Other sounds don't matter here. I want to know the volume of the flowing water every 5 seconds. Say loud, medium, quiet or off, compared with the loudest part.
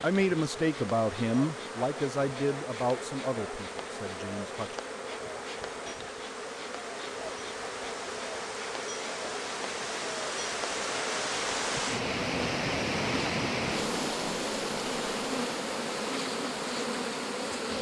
quiet, medium, loud, medium.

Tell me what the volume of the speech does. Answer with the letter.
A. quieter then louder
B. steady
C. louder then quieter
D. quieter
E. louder
D.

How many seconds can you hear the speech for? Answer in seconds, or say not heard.
5 s.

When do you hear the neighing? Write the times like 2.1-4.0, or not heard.
not heard.